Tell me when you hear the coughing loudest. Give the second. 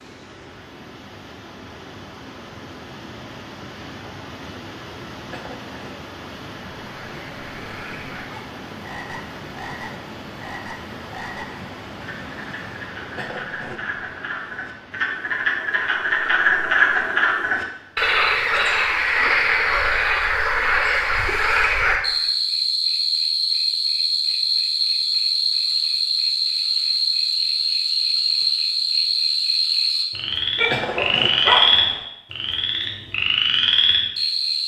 31 s.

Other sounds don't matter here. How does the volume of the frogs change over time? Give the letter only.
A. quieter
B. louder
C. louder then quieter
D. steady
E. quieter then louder
B.